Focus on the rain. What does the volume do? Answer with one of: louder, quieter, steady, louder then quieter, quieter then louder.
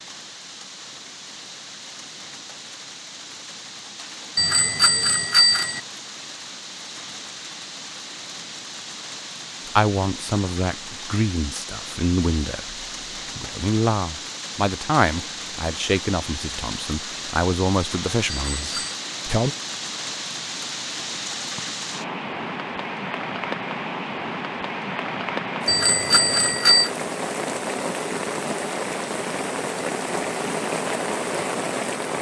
louder.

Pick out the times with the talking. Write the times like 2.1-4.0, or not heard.
9.8-19.6.